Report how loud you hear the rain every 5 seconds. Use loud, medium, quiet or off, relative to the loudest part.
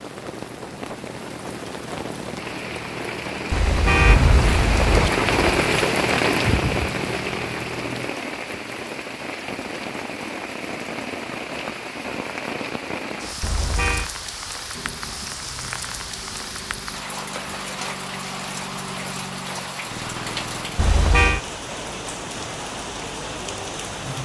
medium, loud, medium, medium, medium.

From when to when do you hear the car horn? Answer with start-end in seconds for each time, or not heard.
3.5-5.1, 13.4-14.1, 20.8-21.4.